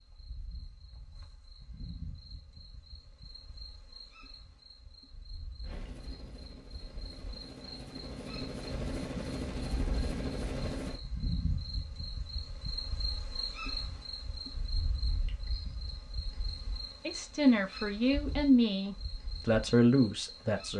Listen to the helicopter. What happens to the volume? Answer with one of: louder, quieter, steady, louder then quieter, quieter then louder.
louder.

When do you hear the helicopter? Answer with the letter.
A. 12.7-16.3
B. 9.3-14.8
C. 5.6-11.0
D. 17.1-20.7
C.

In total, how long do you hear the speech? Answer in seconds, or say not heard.
4 s.